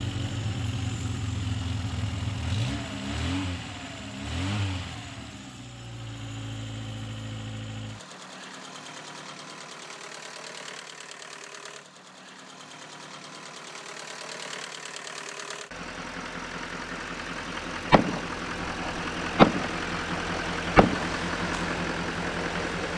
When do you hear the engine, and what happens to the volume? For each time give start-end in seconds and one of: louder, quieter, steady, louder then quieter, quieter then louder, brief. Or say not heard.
0.0-22.9 quieter then louder.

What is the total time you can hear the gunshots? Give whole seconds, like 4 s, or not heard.
3 s.